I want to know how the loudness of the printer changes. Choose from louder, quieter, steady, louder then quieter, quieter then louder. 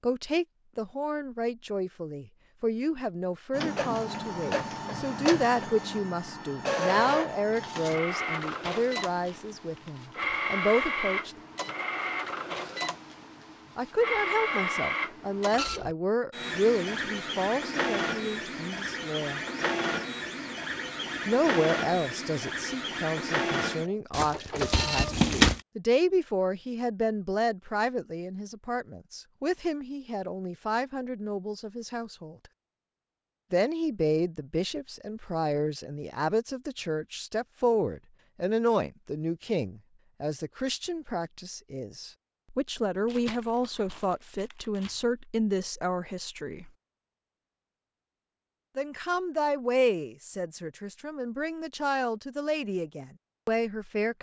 steady.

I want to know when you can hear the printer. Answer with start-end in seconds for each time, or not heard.
3.5-25.1.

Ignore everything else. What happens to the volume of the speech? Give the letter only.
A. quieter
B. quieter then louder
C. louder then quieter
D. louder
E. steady
E.